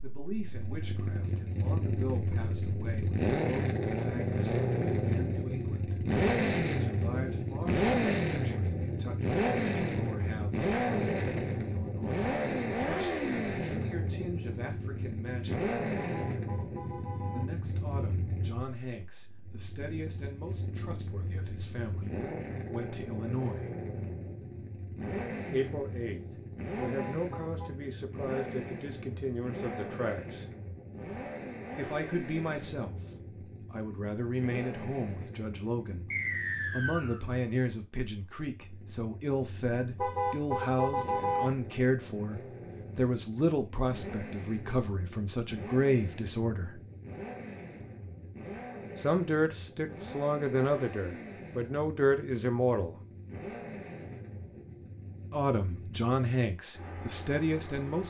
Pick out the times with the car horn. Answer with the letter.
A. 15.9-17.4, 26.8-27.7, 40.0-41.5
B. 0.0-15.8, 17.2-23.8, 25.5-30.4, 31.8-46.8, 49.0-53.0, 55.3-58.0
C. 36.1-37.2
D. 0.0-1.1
A.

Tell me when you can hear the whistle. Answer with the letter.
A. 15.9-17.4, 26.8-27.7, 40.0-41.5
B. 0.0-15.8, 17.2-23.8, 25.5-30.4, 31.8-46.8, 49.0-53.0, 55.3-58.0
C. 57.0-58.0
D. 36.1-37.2
D.